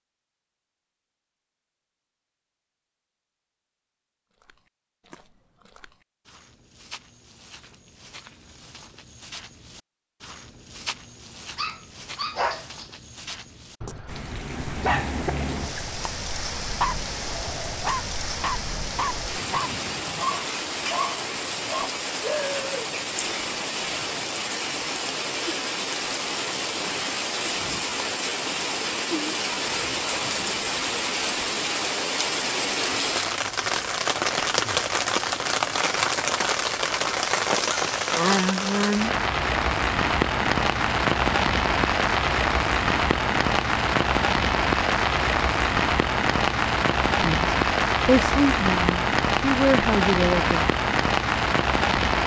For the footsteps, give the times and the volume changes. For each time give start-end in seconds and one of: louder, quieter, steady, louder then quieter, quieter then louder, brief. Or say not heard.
4.3-14.1 louder.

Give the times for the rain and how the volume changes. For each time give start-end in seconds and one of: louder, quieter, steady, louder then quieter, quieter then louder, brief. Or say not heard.
14.1-52.2 louder.